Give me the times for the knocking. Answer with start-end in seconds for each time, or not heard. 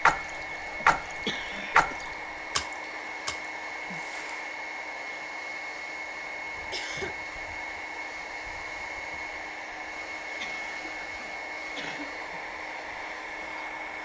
not heard.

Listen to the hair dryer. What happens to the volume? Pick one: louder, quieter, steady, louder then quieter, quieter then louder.
steady.